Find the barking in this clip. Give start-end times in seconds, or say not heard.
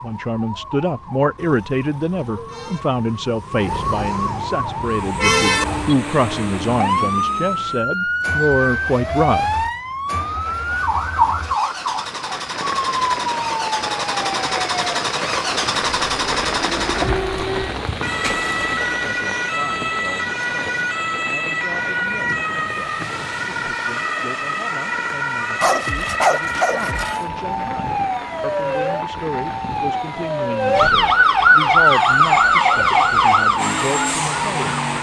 25.6-27.2.